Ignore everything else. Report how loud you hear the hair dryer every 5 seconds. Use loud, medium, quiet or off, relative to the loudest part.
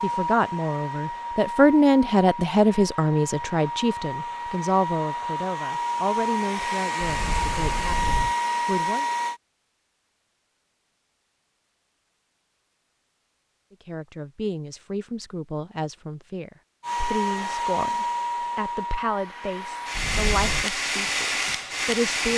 medium, loud, off, loud, loud.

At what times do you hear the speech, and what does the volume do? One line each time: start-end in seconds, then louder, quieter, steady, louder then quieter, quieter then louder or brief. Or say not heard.
0.0-9.1 quieter
13.7-22.3 steady.